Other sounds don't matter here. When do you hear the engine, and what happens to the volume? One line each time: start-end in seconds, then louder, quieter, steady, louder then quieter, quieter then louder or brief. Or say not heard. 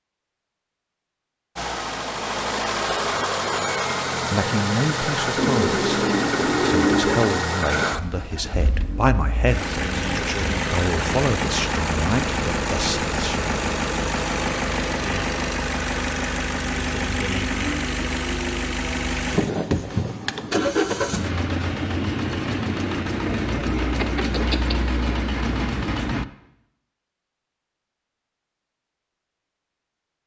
1.6-26.2 steady.